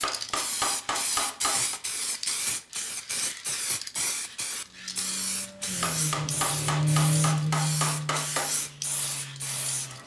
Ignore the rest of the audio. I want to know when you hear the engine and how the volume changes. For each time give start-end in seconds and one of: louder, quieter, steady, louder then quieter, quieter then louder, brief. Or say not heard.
4.7-10.0 louder then quieter.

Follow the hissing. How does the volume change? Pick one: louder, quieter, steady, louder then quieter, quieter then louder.
steady.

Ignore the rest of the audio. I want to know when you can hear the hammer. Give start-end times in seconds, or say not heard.
0.0-1.8, 5.8-8.6.